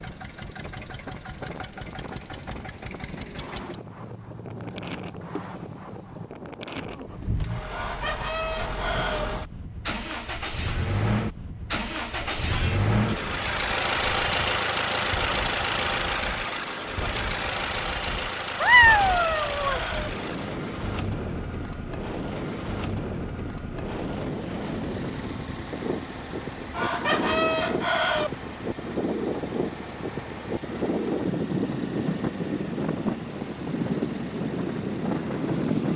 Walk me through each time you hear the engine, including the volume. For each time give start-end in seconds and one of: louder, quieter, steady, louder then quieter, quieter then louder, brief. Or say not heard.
0.0-35.9 louder then quieter.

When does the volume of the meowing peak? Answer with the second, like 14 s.
19 s.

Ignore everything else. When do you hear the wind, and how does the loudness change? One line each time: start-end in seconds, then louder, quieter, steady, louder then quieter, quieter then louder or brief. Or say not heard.
0.0-35.9 louder.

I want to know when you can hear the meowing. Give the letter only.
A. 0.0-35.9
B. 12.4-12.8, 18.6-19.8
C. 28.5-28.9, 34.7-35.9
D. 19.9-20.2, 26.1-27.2
B.